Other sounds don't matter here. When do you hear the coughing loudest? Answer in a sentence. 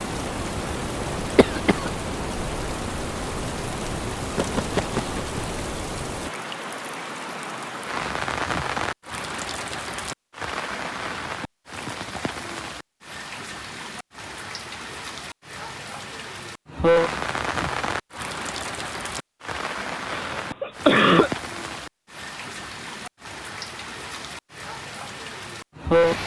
The volume of the coughing peaks at 21 seconds.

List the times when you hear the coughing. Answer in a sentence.
You can hear the coughing from 1.4 to 1.9 s and from 20.1 to 21.3 s.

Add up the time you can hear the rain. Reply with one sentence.
You can hear the rain for 26 seconds altogether.